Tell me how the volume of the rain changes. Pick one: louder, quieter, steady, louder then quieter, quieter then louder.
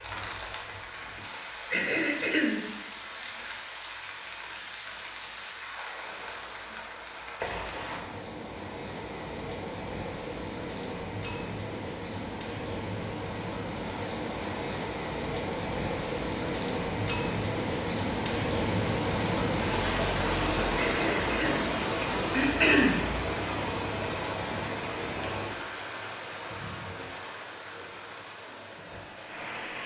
louder then quieter.